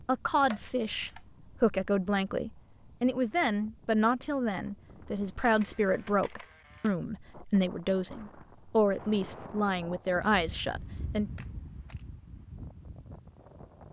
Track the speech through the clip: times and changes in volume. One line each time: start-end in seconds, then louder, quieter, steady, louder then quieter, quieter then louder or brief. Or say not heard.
0.1-11.3 steady.